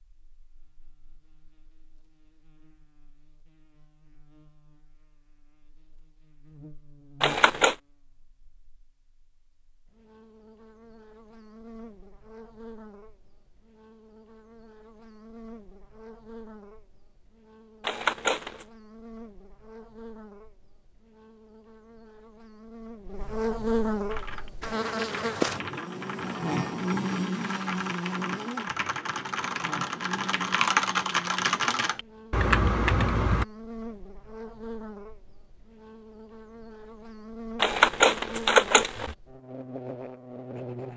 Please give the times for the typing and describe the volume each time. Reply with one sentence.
The typing can be heard from 24.1 to 33.5 s, getting louder.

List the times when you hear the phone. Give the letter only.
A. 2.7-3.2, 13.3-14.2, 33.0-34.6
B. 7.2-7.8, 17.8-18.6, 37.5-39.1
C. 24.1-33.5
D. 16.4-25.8
B.